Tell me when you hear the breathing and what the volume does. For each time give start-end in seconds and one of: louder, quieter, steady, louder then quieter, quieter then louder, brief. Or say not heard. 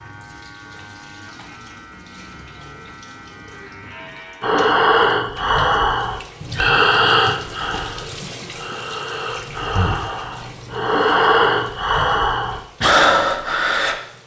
4.4-13.9 quieter then louder.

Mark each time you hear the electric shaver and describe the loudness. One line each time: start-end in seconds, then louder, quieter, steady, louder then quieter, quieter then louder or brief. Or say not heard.
0.0-4.6 steady.